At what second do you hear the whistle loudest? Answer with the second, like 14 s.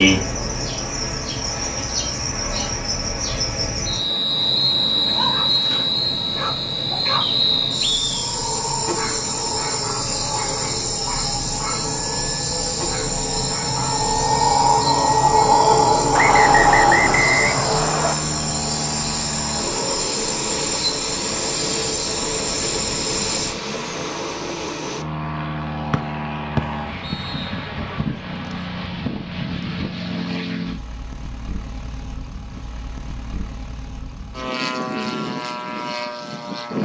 17 s.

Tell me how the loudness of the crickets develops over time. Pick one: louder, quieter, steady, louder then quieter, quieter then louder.
louder then quieter.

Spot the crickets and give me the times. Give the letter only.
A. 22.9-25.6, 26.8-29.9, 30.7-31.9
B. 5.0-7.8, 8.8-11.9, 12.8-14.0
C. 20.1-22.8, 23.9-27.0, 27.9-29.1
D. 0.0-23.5
D.